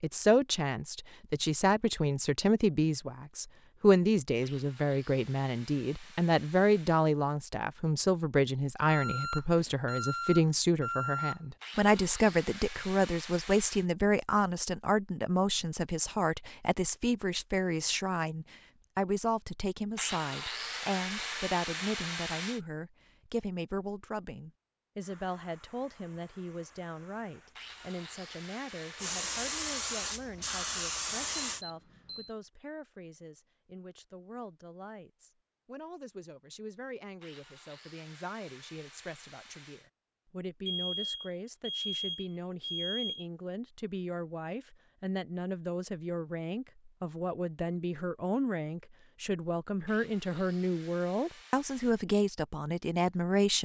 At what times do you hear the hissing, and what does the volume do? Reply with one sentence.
The hissing can be heard from 25.0 to 31.6 s, getting louder.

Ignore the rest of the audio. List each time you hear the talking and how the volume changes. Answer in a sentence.
You can hear the talking from 0.0 to 53.6 s, getting quieter then louder.